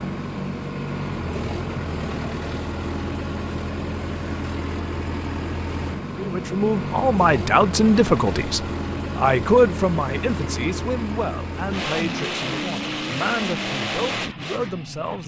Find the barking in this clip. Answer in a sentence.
The barking can't be heard in this clip.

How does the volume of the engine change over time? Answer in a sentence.
The loudness of the engine stays about the same.